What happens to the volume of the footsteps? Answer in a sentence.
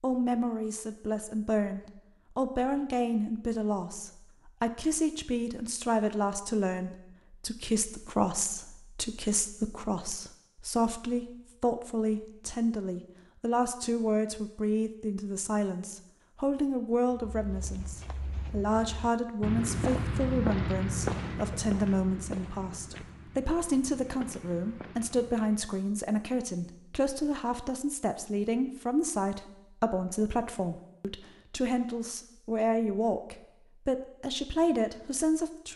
The loudness of the footsteps goes up, then down.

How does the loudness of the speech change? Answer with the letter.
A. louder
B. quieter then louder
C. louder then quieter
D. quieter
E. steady
E.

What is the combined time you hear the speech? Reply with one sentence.
The speech can be heard for 36 seconds in total.